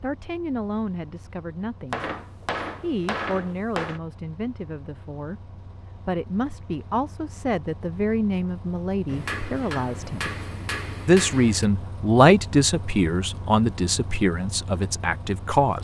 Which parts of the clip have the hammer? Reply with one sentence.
The hammer can be heard from 1.9 to 4.0 s and from 9.1 to 11.7 s.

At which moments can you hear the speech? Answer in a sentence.
The speech can be heard from 0.0 to 5.4 s, from 6.0 to 10.3 s and from 11.1 to 15.8 s.